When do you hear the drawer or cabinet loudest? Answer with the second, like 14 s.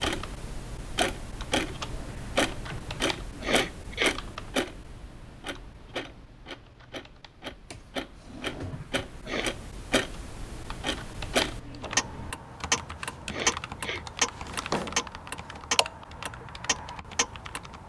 15 s.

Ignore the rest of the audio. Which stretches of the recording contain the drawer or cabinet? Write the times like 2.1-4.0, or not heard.
2.0-3.0, 7.7-8.8, 14.3-15.6.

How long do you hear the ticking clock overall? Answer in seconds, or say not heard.
18 s.